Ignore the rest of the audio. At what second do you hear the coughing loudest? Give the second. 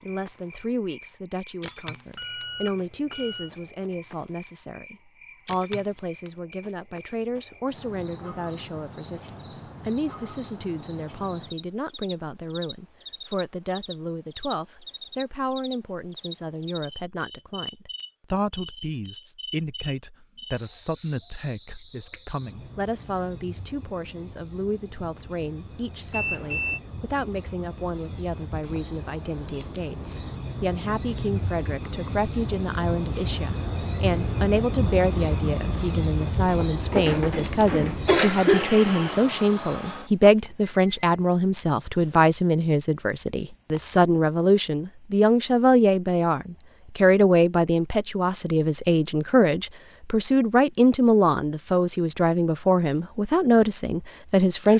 38 s.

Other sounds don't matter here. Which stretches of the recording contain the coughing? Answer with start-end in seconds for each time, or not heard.
36.9-38.6.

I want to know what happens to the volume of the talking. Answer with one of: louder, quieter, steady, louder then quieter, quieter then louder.
louder.